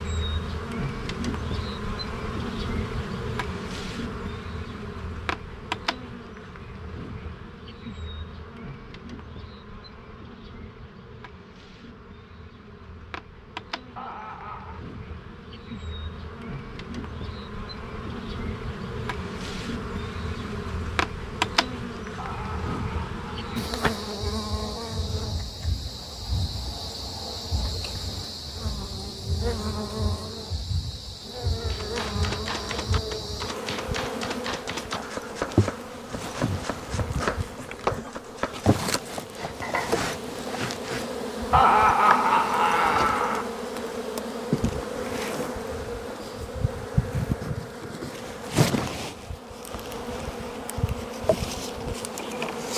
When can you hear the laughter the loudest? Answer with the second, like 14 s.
42 s.